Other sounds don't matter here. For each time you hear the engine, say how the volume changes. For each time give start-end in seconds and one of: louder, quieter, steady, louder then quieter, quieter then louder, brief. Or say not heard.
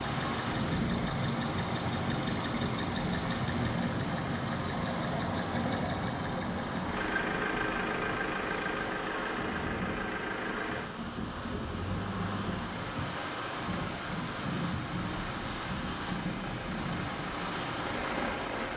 0.0-18.7 quieter.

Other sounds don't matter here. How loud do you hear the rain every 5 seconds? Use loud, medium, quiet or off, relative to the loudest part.
loud, medium, loud, loud.